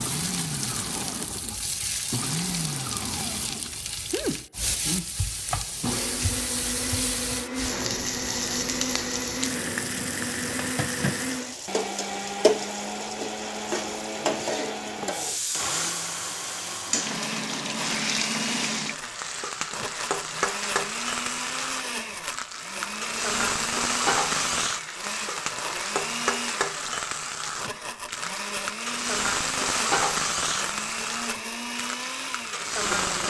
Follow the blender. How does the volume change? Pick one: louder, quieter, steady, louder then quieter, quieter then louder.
steady.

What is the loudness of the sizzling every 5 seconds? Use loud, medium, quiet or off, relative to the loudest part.
medium, loud, loud, loud, loud, loud, loud.